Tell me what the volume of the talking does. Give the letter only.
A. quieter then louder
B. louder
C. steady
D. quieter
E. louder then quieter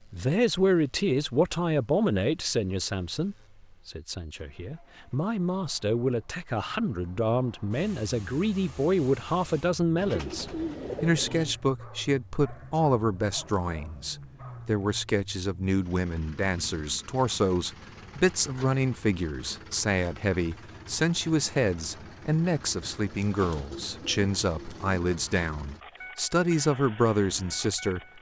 C.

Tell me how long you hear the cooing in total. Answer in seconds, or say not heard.
4 s.